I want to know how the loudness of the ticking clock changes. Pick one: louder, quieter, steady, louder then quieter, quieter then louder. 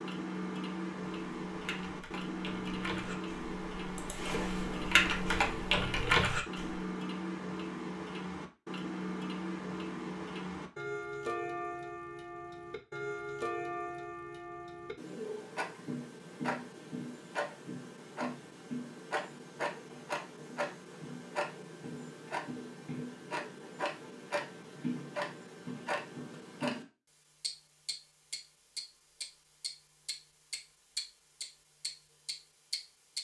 steady.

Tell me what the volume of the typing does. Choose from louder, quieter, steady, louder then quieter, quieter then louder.
louder.